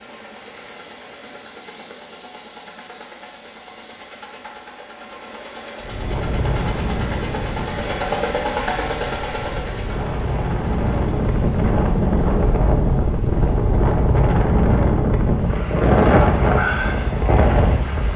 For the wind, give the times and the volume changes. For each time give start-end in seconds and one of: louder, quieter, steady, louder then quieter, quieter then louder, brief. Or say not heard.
5.8-18.1 louder.